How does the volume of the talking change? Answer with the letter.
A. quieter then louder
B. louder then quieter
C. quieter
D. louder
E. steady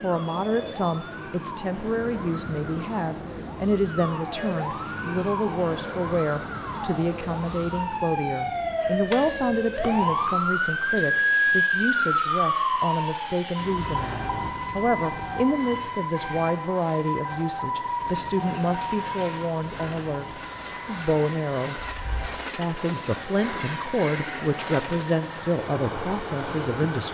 E.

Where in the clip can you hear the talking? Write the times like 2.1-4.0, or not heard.
0.0-21.8, 22.6-27.0.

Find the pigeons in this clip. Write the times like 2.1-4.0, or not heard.
not heard.